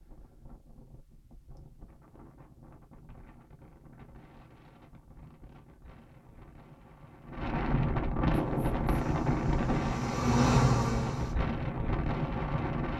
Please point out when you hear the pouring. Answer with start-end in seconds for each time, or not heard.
not heard.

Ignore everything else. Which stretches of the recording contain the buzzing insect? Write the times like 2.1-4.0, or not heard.
8.3-11.3.